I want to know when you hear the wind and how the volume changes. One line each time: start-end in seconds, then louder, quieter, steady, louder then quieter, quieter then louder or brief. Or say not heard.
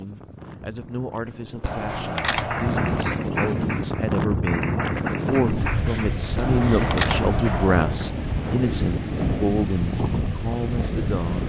0.0-11.4 louder.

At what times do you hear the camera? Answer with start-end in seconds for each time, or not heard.
1.6-3.0, 6.3-7.8.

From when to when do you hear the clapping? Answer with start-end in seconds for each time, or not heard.
1.9-8.2.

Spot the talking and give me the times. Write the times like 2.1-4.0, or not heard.
0.0-11.4.